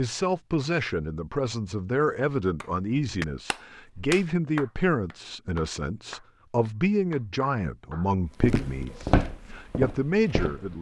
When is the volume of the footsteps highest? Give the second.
9 s.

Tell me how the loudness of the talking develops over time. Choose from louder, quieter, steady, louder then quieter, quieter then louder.
steady.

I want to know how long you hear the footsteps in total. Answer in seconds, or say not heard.
2 s.